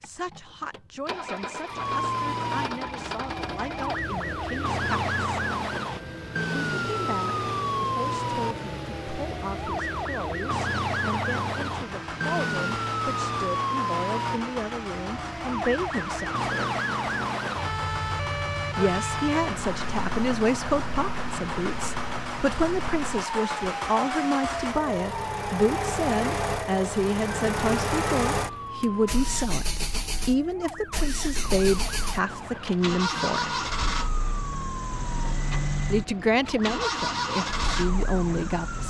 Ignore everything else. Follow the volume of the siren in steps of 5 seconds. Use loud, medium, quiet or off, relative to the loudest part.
loud, loud, loud, loud, medium, medium, medium, medium.